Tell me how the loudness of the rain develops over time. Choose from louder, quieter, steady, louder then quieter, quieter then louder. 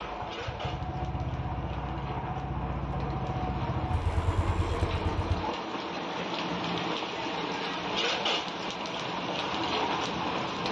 louder.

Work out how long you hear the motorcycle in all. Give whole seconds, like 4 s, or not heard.
5 s.